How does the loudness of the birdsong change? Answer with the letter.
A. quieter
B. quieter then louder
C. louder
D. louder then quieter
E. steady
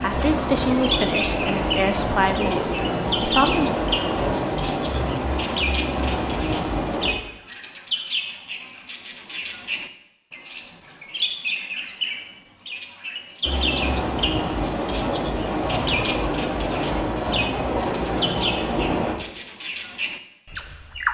E.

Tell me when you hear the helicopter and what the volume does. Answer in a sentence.
You can hear the helicopter from 0.0 to 7.2 s, at a steady volume; and from 13.4 to 19.1 s, at a steady volume.